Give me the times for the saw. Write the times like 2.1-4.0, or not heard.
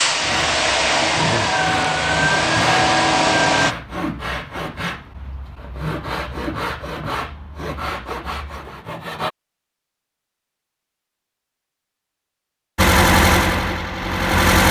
0.2-9.3.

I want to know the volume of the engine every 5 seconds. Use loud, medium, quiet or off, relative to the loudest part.
loud, off, loud.